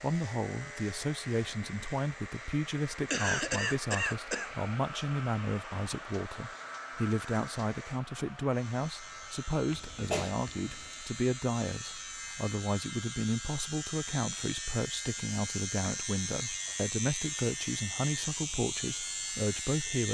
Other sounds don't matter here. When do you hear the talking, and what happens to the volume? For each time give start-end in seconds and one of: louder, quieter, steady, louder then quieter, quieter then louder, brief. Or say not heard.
0.0-20.0 steady.